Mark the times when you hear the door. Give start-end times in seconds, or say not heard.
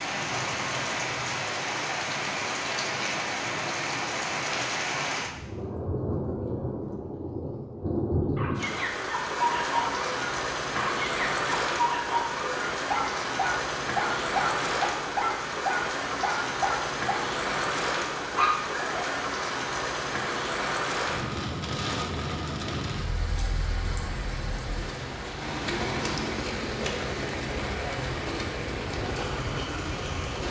not heard.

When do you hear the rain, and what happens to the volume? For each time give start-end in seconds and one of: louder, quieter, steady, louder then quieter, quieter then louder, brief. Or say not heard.
0.0-30.4 steady.